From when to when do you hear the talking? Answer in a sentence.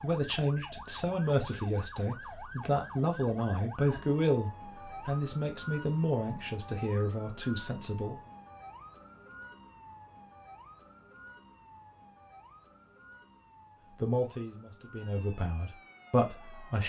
The talking can be heard from 0.0 to 8.2 s and from 14.0 to 16.8 s.